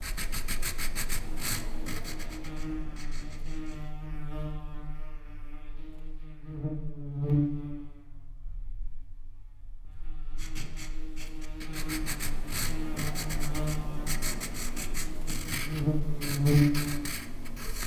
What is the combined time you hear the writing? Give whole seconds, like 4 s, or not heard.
11 s.